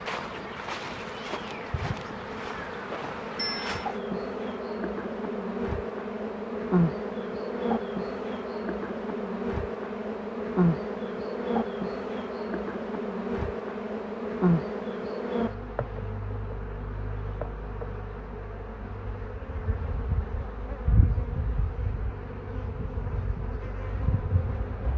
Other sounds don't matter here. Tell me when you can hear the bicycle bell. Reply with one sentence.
The bicycle bell can be heard from 3.4 to 3.8 s.